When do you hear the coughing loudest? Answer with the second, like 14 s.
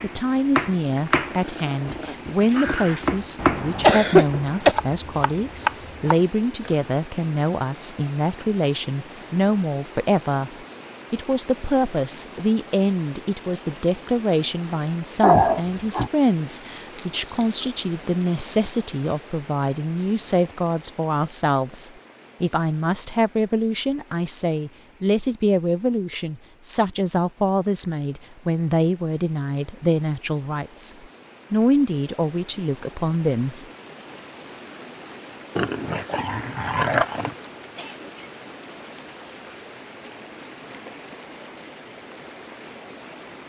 4 s.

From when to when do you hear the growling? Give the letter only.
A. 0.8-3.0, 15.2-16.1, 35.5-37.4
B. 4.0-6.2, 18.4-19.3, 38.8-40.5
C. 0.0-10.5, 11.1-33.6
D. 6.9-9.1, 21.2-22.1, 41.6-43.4
A.